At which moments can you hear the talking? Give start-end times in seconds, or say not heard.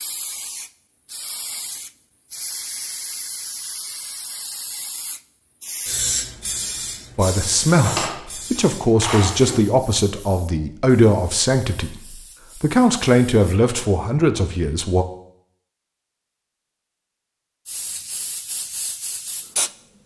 7.2-11.9, 12.6-15.1.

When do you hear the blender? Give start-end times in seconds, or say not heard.
not heard.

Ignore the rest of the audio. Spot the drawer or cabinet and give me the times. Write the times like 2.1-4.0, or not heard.
7.7-9.7.